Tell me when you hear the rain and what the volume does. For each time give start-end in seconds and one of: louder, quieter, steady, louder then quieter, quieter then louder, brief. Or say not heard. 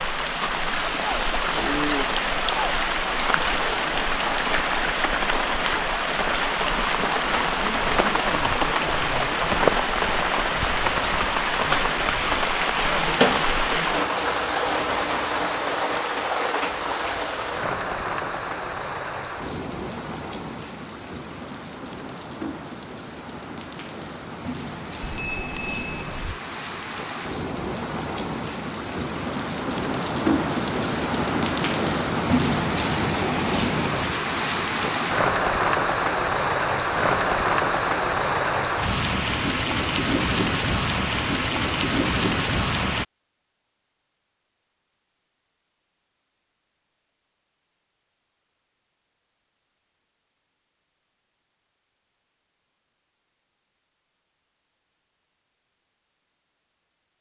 0.0-43.0 quieter then louder.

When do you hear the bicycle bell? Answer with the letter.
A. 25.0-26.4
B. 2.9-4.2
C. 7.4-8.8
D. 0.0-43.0
A.